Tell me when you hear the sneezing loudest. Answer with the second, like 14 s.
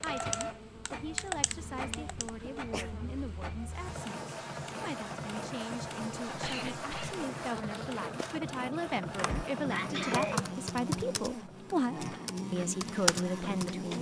10 s.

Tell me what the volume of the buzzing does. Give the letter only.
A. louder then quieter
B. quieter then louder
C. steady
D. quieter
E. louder
E.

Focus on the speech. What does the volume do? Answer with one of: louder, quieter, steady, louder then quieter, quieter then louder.
louder.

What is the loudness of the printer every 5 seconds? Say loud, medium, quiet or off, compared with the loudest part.
loud, loud, medium.